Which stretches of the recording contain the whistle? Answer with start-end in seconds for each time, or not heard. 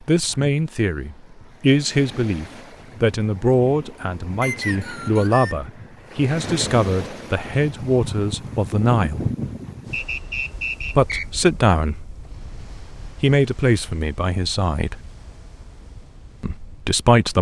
4.4-5.5, 9.9-11.4.